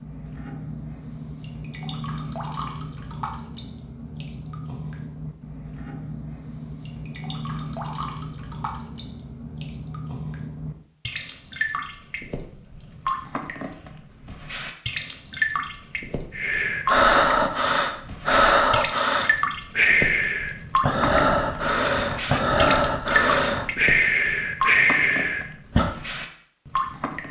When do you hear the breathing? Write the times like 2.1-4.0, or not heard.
16.4-25.9.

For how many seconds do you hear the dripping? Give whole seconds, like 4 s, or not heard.
27 s.